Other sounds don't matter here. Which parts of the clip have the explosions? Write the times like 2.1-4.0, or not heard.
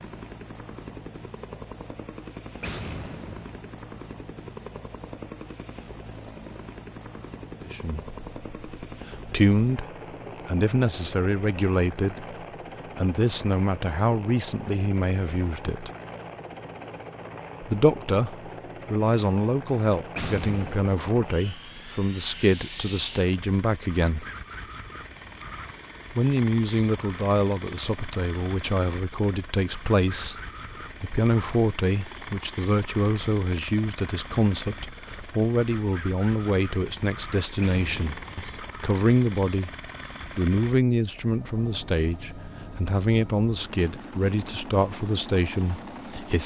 2.6-3.7, 20.1-21.1, 37.6-38.5.